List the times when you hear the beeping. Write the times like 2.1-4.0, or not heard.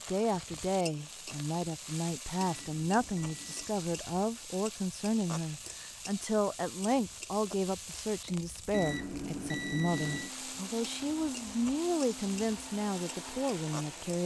2.4-3.8, 8.7-10.3.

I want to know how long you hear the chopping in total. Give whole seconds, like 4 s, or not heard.
not heard.